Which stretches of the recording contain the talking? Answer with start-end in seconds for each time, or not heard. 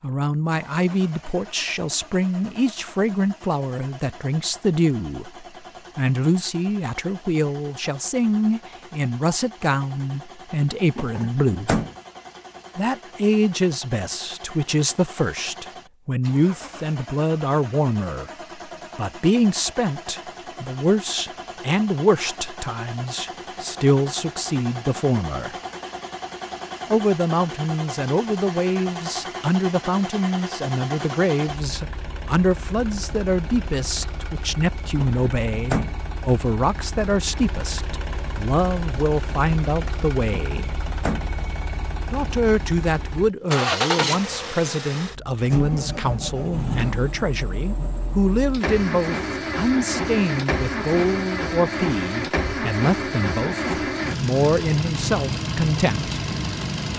0.0-11.7, 12.8-18.3, 18.9-25.6, 26.9-40.8, 42.1-56.1.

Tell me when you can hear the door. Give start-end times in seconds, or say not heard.
10.9-11.9, 35.0-36.0, 40.3-41.2.